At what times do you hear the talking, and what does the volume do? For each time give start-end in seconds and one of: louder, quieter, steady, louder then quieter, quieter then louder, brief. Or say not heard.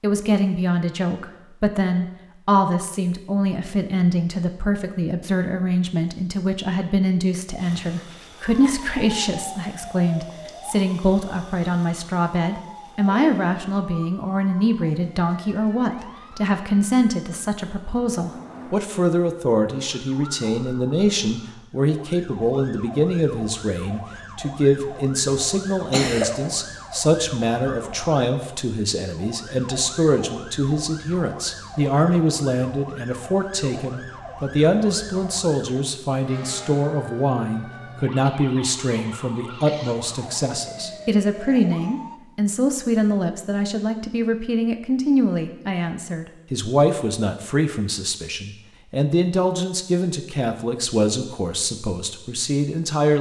0.0-53.1 steady.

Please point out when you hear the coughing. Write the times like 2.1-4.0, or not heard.
25.7-26.4.